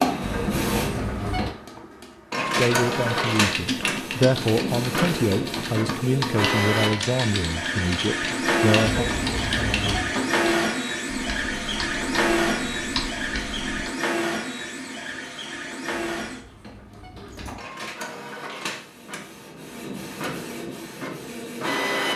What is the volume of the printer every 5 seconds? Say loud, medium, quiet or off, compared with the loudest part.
loud, loud, loud, medium, loud.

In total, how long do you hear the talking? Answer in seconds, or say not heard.
7 s.